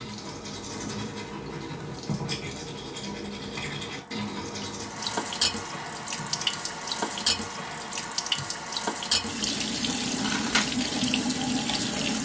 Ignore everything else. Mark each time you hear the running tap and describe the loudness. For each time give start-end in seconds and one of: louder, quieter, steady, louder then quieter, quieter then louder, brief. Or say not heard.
0.0-12.2 louder.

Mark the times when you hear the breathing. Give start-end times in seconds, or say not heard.
not heard.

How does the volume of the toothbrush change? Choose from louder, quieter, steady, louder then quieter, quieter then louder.
quieter.